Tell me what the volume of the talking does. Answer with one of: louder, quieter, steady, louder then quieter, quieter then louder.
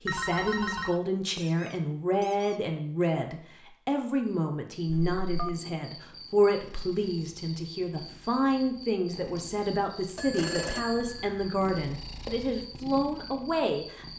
steady.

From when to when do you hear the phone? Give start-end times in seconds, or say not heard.
0.1-1.0, 4.8-5.6, 10.2-11.6.